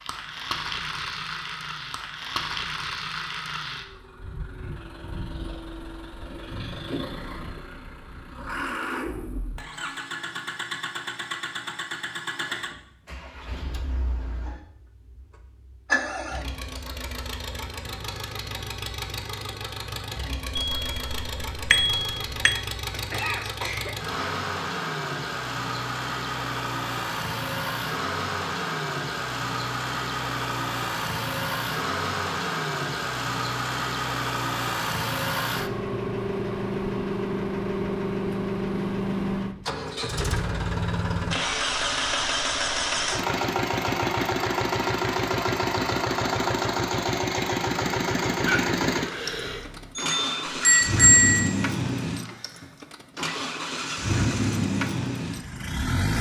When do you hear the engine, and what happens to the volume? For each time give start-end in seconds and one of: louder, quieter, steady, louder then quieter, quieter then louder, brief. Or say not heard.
0.0-56.1 louder.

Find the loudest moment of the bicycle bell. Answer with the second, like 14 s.
51 s.